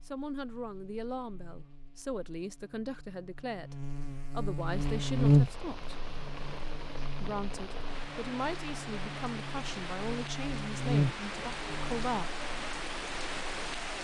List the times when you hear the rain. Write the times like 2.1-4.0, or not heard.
4.5-13.9.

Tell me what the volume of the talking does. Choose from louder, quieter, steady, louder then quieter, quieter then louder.
steady.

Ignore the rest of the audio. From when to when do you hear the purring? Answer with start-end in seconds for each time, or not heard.
not heard.